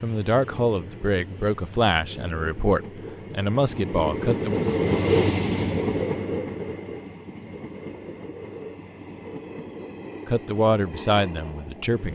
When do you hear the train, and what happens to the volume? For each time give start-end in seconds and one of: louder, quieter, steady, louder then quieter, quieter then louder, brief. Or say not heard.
0.0-12.1 louder then quieter.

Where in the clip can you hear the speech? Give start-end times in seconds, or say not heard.
0.0-4.6, 10.2-12.1.